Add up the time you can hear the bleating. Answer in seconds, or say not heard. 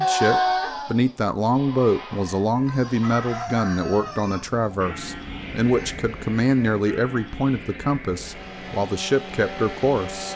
10 s.